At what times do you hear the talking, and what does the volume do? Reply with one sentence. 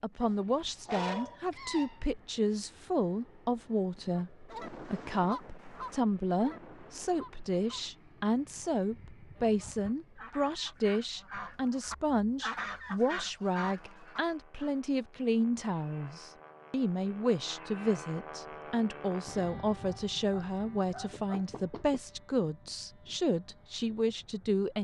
You can hear the talking from 0.0 to 24.7 s, at a steady volume.